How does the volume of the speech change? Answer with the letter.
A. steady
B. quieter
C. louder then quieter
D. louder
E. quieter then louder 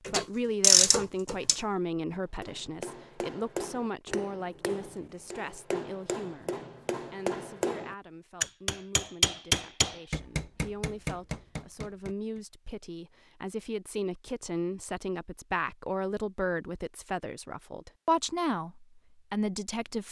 E.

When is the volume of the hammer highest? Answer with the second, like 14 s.
9 s.